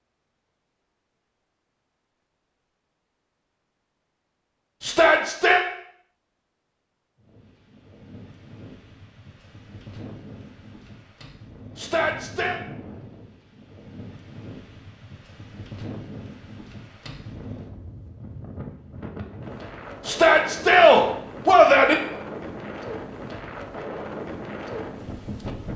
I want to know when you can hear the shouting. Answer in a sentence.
The shouting can be heard from 4.8 to 5.6 s, from 11.8 to 12.6 s and from 20.1 to 21.9 s.